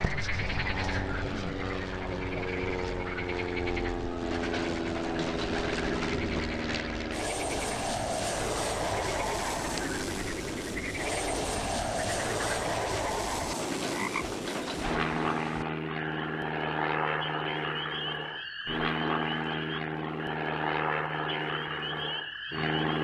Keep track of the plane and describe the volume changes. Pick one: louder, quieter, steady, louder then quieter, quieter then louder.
steady.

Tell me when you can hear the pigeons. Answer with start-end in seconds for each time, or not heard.
4.3-6.5, 13.6-15.2.